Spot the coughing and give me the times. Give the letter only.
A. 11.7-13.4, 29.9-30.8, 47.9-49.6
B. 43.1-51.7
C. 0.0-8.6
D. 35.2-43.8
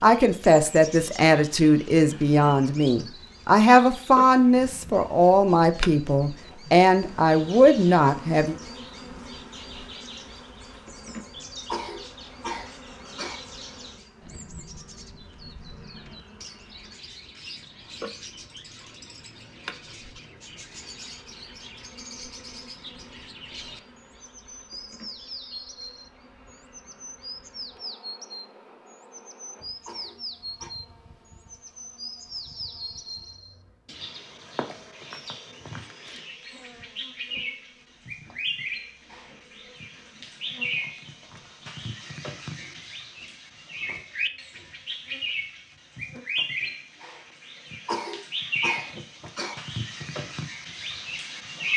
A.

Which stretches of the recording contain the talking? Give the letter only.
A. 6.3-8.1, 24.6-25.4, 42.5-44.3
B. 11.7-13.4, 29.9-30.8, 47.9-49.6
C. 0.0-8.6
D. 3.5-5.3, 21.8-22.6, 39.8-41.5
C.